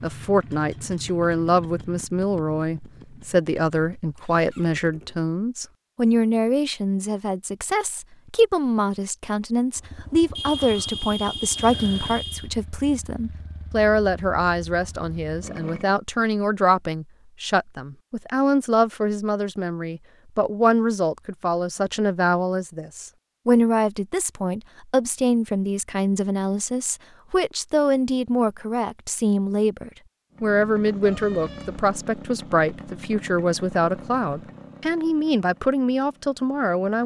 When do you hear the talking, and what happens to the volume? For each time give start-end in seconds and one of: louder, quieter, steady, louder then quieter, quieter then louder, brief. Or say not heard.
0.0-37.0 steady.